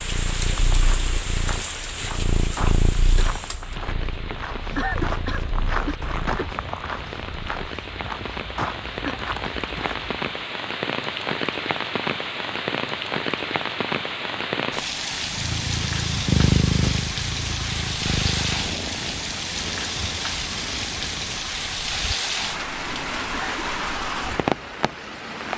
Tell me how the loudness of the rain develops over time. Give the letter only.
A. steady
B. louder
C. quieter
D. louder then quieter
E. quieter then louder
B.